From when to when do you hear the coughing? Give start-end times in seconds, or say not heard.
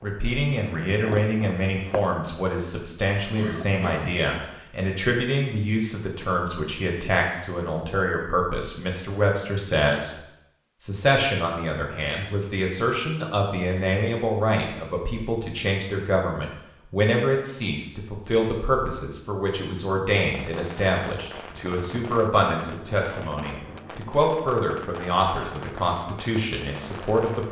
3.4-4.2.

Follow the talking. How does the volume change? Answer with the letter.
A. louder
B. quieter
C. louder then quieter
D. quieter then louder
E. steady
E.